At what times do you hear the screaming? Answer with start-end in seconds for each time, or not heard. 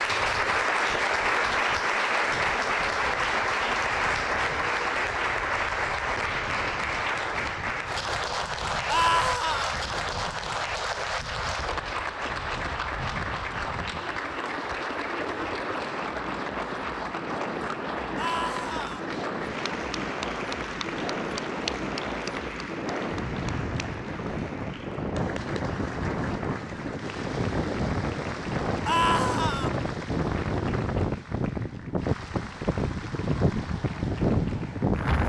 8.8-9.8, 18.1-19.0, 28.9-29.7.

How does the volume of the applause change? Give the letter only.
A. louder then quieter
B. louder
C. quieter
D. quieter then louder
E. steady
C.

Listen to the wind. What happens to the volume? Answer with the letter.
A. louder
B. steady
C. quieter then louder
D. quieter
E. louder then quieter
A.